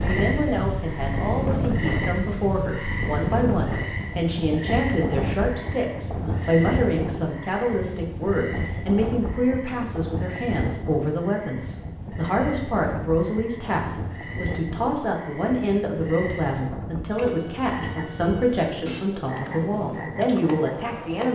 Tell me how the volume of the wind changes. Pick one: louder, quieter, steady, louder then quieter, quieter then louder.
quieter.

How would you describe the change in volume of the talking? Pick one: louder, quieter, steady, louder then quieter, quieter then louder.
steady.